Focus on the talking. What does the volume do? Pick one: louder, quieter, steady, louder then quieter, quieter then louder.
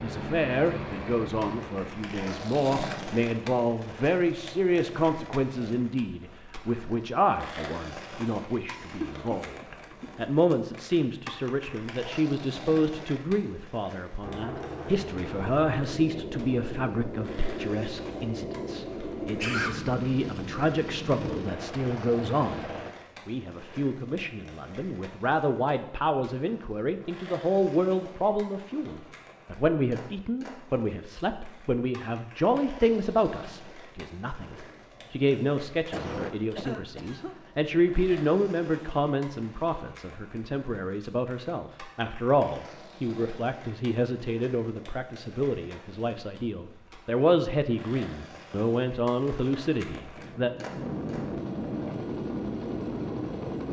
steady.